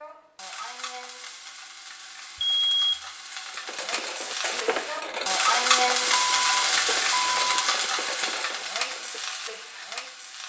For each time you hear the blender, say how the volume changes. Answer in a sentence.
The blender can't be heard in this clip.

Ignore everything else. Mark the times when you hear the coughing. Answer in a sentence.
The coughing can't be heard in this clip.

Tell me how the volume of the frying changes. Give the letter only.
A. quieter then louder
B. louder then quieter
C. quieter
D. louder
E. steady
B.